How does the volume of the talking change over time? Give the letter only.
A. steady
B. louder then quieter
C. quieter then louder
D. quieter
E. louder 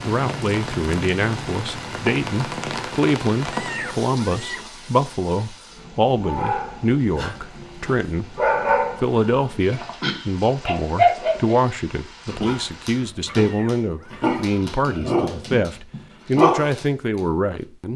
A.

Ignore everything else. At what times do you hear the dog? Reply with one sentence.
The dog can be heard from 6.2 to 11.6 s and from 12.2 to 17.2 s.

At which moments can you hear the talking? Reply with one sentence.
The talking can be heard from 0.0 to 8.4 s and from 9.0 to 17.9 s.